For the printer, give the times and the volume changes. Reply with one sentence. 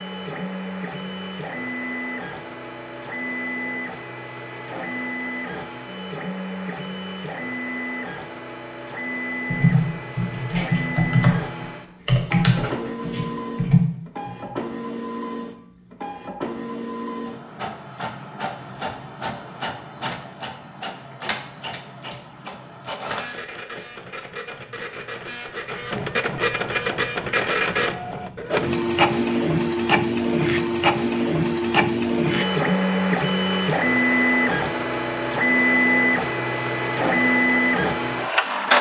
You can hear the printer from 0.0 to 38.7 s, getting louder.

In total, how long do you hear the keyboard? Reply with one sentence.
You can hear the keyboard for 5 seconds altogether.